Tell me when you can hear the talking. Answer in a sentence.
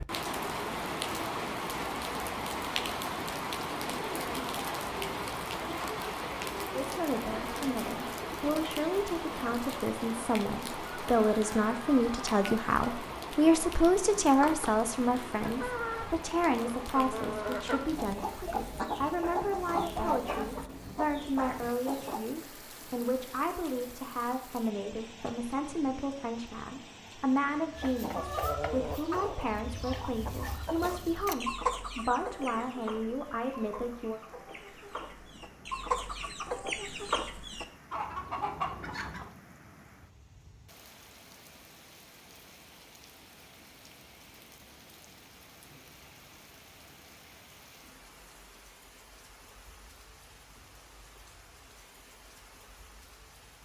The talking can be heard from 6.7 to 34.2 s.